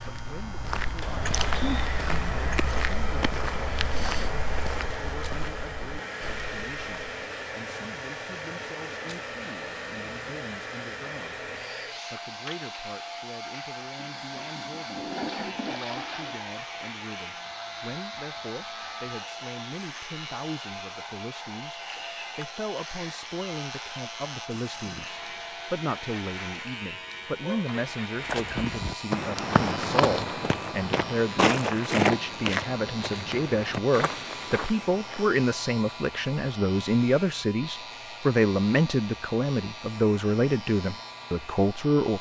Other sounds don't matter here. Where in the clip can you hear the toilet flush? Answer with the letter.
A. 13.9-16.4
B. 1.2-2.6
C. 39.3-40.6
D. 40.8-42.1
A.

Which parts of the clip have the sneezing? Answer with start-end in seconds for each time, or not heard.
1.2-2.6.